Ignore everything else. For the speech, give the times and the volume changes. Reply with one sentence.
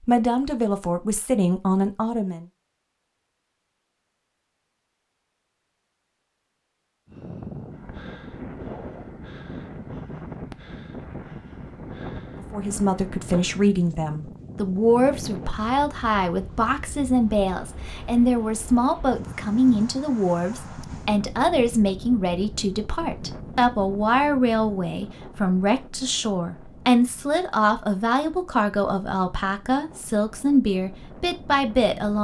You can hear the speech briefly from 0.1 to 2.5 s; and from 12.4 to 32.1 s, at a steady volume.